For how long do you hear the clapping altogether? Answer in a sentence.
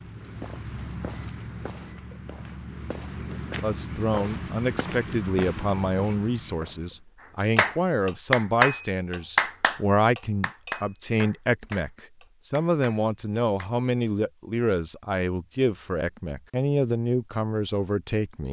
The clapping can be heard for 6 seconds in total.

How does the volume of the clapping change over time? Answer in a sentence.
The loudness of the clapping goes down.